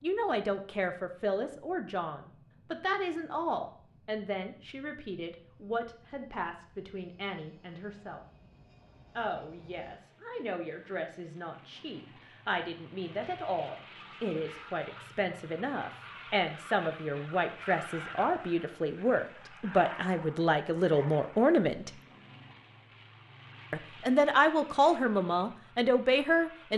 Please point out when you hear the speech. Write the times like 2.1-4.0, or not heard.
0.0-8.2, 9.2-21.9, 23.7-26.7.